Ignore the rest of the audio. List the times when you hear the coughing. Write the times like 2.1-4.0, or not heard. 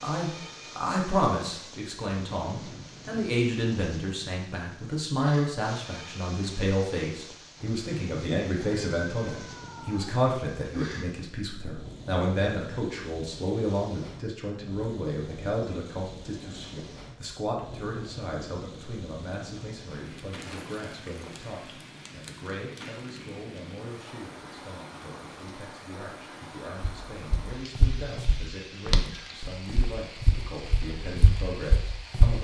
not heard.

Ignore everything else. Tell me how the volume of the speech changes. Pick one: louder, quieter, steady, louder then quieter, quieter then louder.
quieter.